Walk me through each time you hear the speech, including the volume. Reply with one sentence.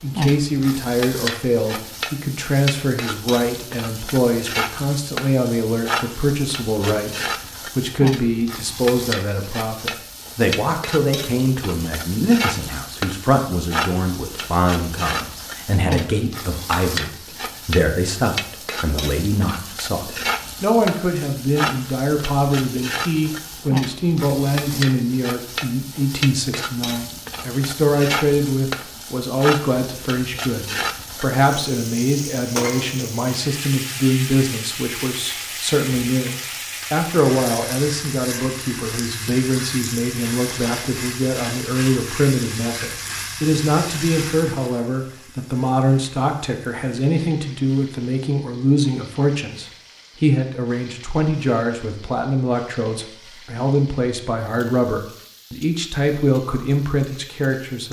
The speech can be heard from 0.0 to 57.8 s, at a steady volume.